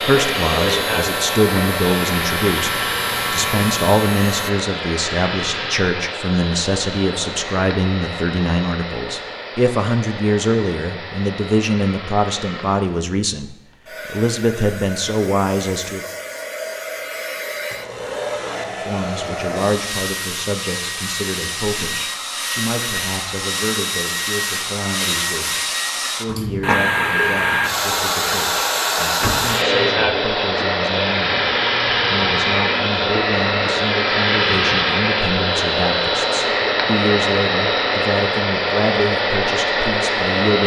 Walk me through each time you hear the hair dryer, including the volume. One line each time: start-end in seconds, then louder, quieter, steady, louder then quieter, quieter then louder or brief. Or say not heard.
0.0-40.6 quieter then louder.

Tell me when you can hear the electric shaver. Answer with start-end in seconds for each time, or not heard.
0.0-4.5.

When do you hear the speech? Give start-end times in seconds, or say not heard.
0.0-16.1, 18.6-31.4, 32.0-40.6.